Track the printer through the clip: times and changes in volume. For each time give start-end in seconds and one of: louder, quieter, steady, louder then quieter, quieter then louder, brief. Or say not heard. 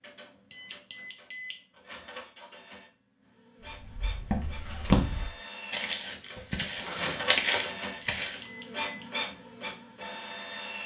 0.0-10.8 louder.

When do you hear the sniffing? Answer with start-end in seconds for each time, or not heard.
6.3-7.4.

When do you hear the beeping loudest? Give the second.
1 s.